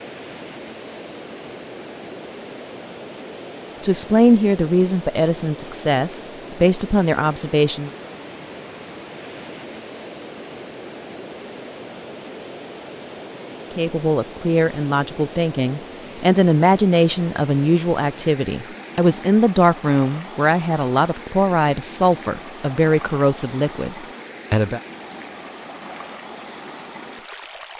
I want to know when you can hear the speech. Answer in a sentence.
You can hear the speech from 3.8 to 8.0 s and from 13.8 to 24.8 s.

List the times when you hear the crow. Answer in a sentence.
You can't hear the crow here.